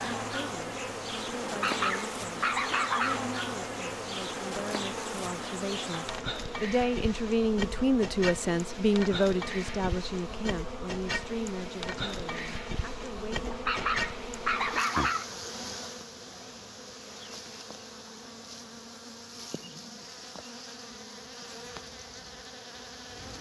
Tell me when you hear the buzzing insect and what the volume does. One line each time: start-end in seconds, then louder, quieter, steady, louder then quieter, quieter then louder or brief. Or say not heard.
0.0-23.3 quieter.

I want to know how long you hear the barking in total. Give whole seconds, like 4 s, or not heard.
4 s.